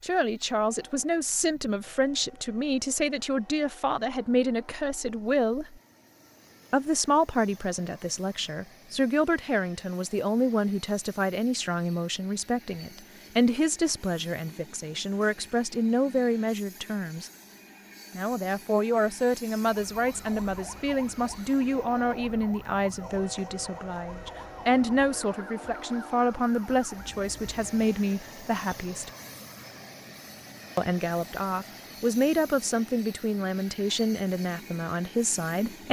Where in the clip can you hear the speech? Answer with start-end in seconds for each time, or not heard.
0.0-5.8, 6.7-17.3, 18.1-29.1, 30.8-35.8.